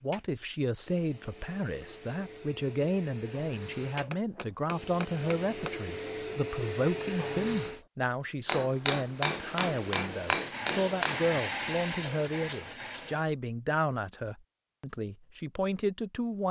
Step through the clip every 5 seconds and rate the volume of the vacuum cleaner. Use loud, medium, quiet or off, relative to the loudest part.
medium, loud, loud, off.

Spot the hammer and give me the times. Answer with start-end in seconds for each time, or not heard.
4.0-5.8, 8.4-11.2.